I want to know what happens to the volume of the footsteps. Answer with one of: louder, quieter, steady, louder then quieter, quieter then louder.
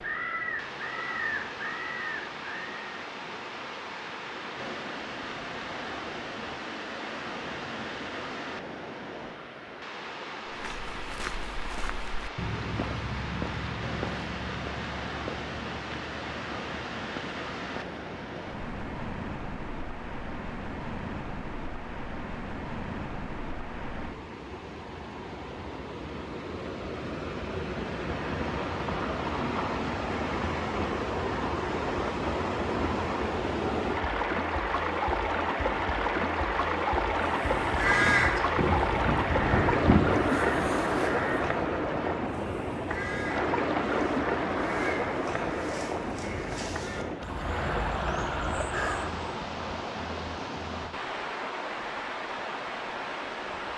louder then quieter.